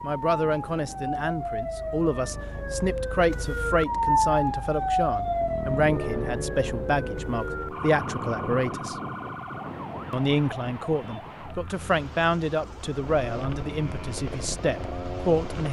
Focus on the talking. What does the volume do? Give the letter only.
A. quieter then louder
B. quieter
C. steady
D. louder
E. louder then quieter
C.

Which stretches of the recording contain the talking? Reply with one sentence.
You can hear the talking from 0.0 to 8.9 s and from 10.1 to 15.6 s.